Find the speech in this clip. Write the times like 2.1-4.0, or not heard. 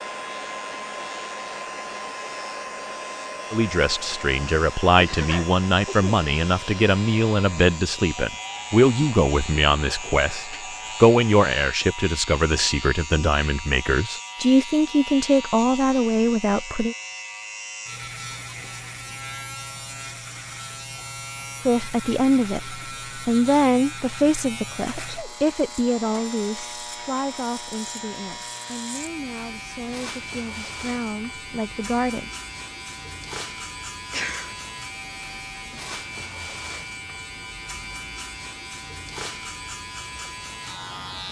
3.5-16.9, 21.6-32.3.